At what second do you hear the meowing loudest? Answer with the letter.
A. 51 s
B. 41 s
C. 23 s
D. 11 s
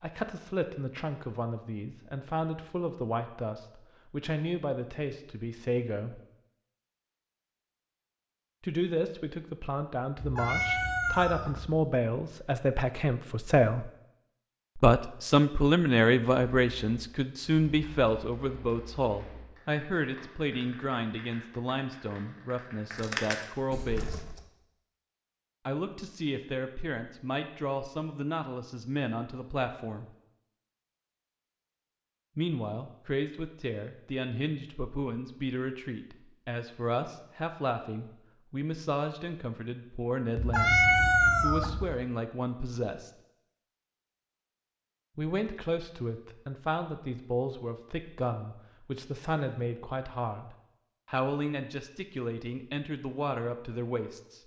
B.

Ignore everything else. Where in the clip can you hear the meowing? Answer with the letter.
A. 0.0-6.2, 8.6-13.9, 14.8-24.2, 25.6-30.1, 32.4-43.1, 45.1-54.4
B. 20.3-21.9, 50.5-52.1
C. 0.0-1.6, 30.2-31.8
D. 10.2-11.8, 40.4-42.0
D.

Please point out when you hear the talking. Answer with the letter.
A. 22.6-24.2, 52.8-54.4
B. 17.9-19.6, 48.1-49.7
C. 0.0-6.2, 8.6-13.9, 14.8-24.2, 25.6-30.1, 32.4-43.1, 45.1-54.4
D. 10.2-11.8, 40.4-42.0
C.